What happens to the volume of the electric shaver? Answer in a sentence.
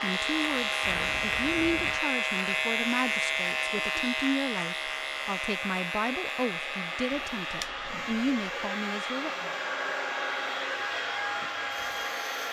The loudness of the electric shaver goes down.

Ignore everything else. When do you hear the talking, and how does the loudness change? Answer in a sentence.
You can hear the talking from 0.0 to 9.5 s, at a steady volume.